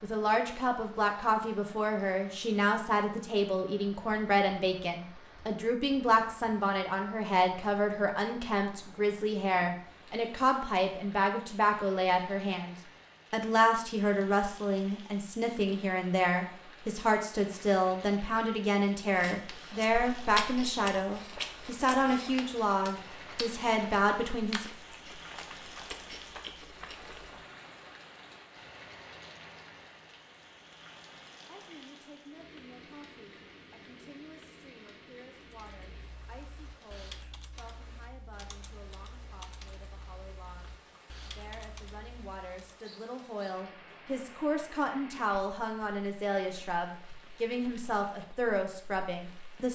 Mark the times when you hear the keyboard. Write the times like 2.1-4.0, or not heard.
35.5-42.8.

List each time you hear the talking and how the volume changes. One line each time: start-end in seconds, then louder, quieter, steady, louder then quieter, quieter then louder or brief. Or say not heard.
0.0-24.6 steady
31.4-49.7 louder.